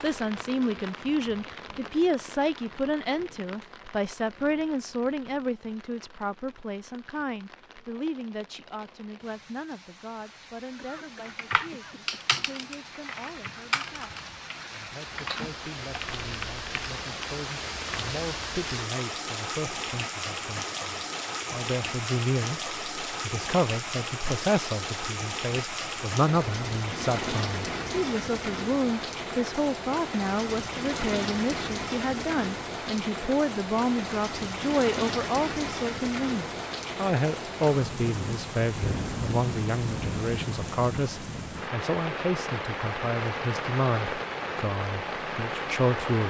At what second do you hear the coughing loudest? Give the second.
11 s.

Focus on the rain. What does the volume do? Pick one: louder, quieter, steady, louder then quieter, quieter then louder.
louder.